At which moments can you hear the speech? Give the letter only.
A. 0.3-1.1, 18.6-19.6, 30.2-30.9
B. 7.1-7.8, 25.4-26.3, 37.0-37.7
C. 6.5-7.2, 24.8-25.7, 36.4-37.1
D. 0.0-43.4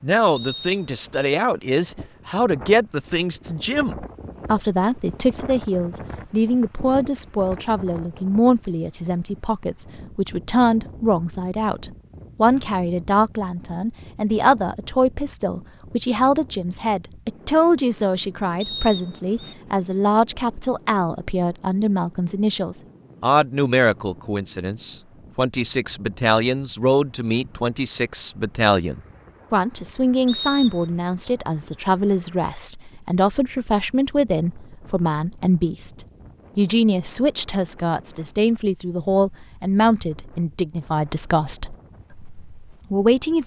D.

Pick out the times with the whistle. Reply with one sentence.
You can hear the whistle from 0.3 to 1.1 s, from 18.6 to 19.6 s and from 30.2 to 30.9 s.